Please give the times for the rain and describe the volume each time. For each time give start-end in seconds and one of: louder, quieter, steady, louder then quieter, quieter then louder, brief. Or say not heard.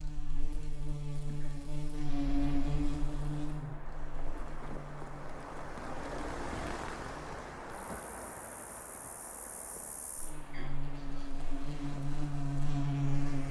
2.0-13.4 louder then quieter.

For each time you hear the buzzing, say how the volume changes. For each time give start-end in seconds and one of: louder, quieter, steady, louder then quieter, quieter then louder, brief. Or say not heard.
0.0-13.4 quieter then louder.